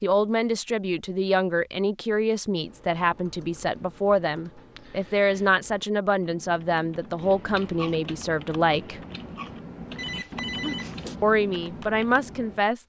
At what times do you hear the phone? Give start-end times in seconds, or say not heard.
9.9-11.2.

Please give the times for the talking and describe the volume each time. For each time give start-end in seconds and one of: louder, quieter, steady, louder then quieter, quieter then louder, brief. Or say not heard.
0.0-9.0 steady
11.2-12.8 brief.